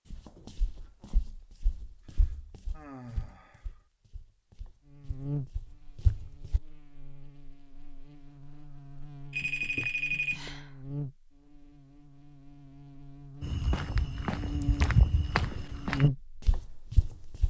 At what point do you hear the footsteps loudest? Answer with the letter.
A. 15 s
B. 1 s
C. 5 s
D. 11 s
A.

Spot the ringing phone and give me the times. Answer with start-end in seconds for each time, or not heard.
9.3-10.5.